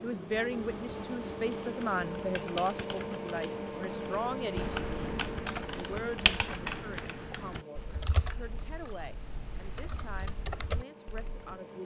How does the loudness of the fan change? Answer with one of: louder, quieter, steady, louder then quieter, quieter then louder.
quieter.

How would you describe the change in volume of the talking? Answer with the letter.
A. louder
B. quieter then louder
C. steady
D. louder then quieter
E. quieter
E.